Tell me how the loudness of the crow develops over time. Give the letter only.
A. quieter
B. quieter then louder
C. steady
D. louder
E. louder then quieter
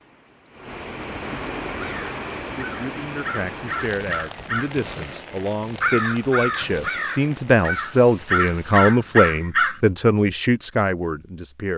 D.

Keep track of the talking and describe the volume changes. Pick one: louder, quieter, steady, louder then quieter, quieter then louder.
louder.